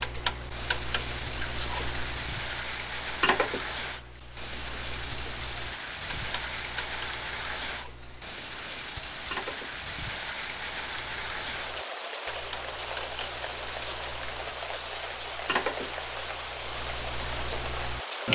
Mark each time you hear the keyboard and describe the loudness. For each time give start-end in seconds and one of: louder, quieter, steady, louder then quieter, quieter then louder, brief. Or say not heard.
not heard.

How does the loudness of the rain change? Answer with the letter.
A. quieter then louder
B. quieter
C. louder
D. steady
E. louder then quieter
D.